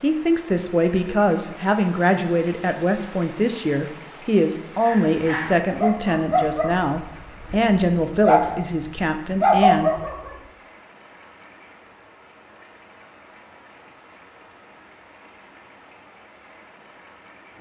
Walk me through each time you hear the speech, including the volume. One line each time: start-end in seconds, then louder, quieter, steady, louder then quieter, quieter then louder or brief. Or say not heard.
0.0-9.9 steady.